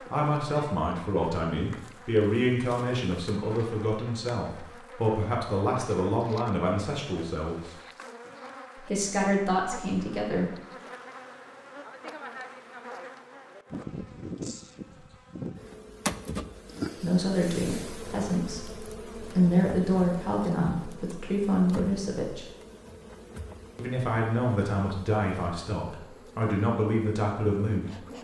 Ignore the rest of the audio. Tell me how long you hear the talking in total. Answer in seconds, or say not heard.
19 s.